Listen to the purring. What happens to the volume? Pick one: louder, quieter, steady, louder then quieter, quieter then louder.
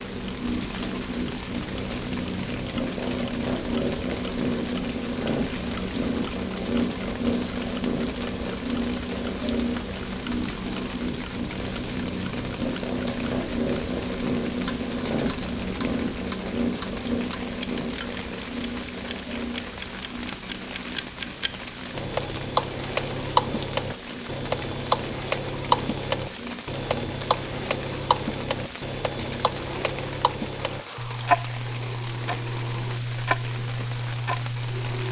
quieter.